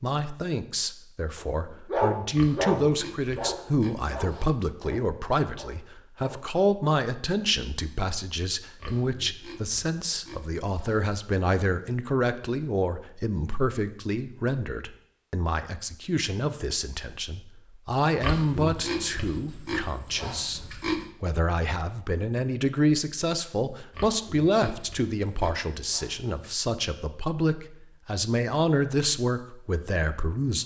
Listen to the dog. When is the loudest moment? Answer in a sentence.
The volume of the dog peaks at 2 seconds.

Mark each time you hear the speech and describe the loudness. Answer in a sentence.
The speech can be heard from 0.0 to 30.6 s, at a steady volume.